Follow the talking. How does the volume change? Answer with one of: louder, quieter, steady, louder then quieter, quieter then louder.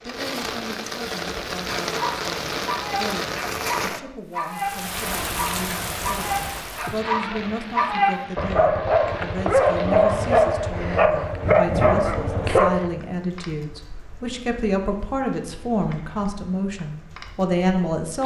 louder.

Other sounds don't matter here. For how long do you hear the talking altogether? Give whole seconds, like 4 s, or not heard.
18 s.